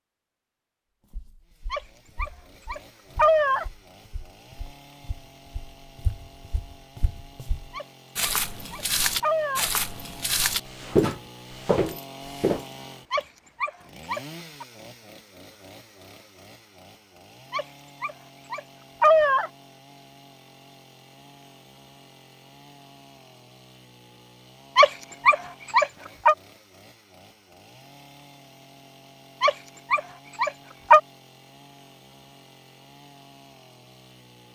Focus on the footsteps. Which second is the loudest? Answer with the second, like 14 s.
11 s.